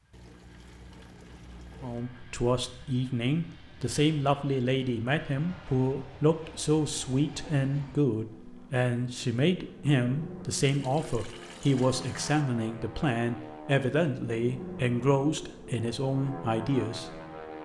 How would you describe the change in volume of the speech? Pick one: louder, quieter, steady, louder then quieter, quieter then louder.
steady.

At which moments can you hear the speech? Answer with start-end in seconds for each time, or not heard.
1.8-17.2.